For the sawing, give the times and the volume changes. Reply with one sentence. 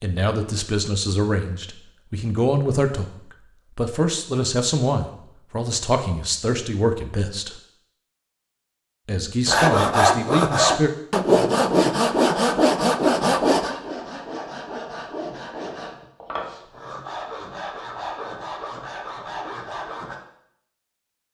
You can hear the sawing from 9.4 to 20.2 s, getting quieter.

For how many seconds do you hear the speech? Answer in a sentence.
You can hear the speech for 9 seconds altogether.